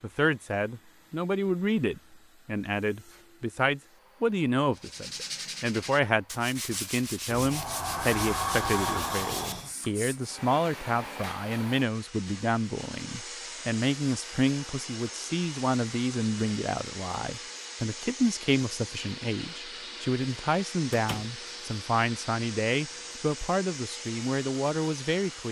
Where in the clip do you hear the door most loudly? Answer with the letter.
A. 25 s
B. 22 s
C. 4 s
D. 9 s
D.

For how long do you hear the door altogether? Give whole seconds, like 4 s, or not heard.
3 s.